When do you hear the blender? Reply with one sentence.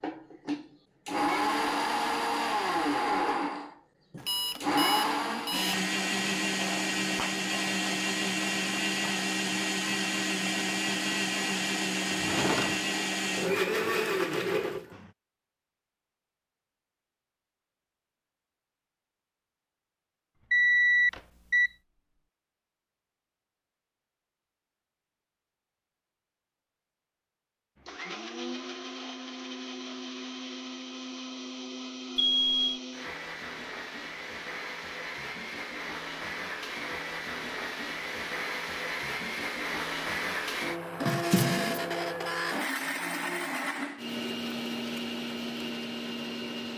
The blender can be heard from 0.0 to 15.1 s and from 27.8 to 46.7 s.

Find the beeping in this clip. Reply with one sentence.
The beeping can be heard from 4.2 to 5.8 s, from 20.5 to 21.7 s and from 32.1 to 32.8 s.